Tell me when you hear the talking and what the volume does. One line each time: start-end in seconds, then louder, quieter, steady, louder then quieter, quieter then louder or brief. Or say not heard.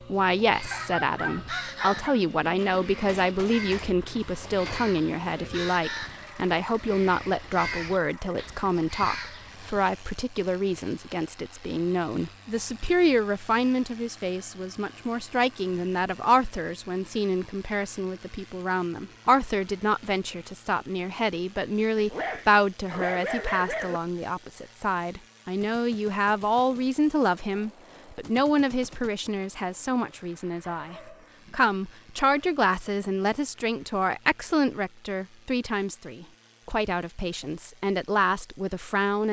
0.1-39.2 steady.